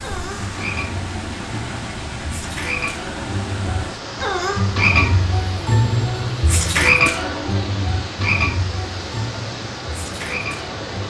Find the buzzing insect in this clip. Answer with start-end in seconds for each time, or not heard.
not heard.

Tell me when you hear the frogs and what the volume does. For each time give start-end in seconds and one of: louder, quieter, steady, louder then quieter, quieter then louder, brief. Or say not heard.
0.0-11.0 louder then quieter.